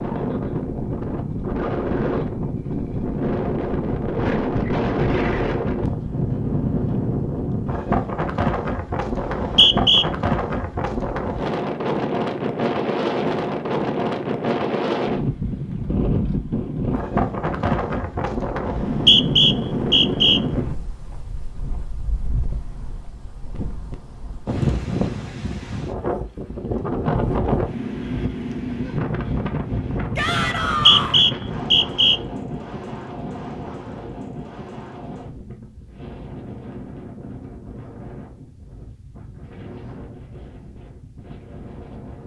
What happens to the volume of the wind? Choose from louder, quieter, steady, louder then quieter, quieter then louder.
quieter.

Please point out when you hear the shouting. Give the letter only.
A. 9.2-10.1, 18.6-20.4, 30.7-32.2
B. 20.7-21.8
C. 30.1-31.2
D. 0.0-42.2
C.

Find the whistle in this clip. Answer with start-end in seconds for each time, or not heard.
9.2-10.1, 18.6-20.4, 30.7-32.2.